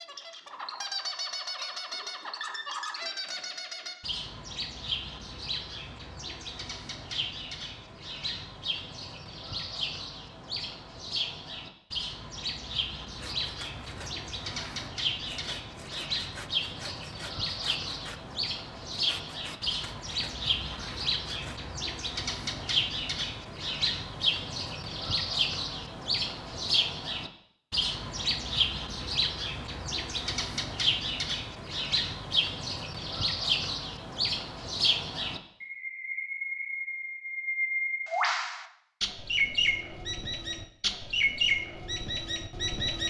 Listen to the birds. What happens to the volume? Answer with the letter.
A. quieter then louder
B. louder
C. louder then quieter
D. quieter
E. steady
B.